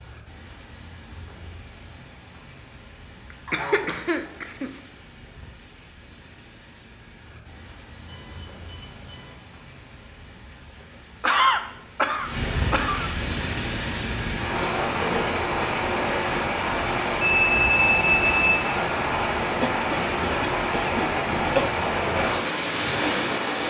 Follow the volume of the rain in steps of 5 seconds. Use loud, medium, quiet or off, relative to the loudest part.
quiet, quiet, medium, loud, loud.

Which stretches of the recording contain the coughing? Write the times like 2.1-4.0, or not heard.
3.3-4.8, 11.2-13.1, 19.6-21.7.